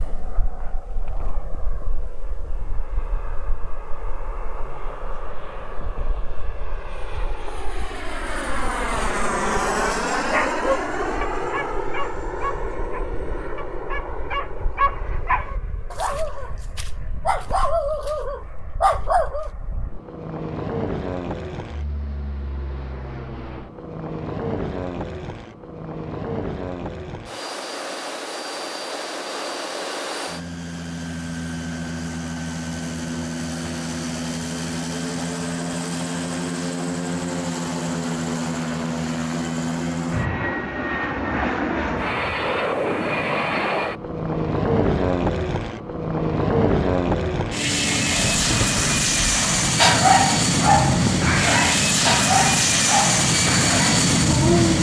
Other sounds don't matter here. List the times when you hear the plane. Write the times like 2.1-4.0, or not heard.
0.0-54.7.